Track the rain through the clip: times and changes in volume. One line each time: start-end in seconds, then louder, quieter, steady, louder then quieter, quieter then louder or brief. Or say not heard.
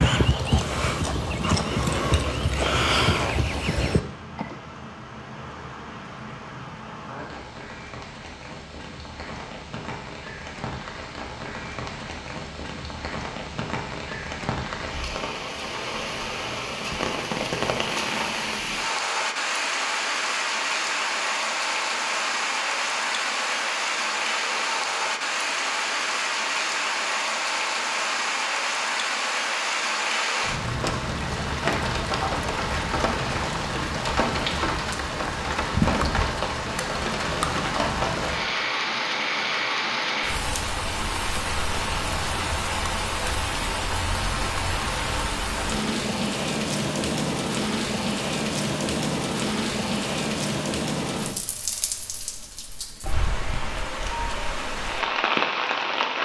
0.1-56.2 louder.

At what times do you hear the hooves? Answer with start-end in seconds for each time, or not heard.
0.0-4.5.